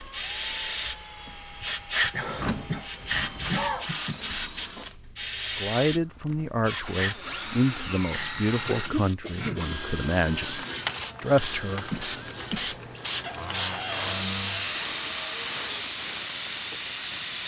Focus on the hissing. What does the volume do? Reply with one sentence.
The loudness of the hissing goes down, then up.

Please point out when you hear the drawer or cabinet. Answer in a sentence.
The drawer or cabinet can be heard from 2.2 to 3.9 s, from 6.7 to 8.3 s and from 13.2 to 14.9 s.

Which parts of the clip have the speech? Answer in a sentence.
You can hear the speech from 5.5 to 11.9 s.